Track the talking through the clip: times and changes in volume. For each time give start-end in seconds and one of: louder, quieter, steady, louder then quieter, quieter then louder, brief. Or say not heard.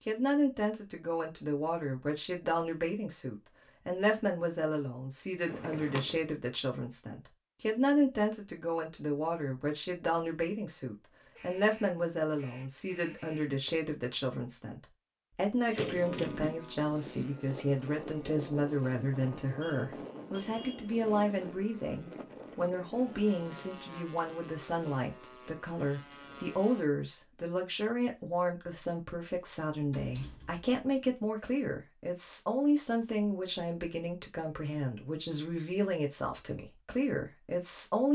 0.1-38.1 steady.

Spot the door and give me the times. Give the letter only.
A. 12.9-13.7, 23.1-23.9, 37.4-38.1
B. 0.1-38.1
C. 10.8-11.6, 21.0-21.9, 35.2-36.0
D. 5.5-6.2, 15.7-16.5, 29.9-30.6
D.